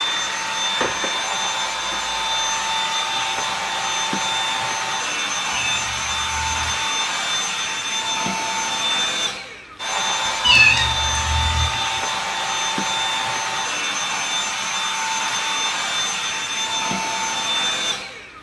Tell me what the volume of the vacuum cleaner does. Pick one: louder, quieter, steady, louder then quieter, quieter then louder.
steady.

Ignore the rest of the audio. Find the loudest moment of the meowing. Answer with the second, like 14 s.
11 s.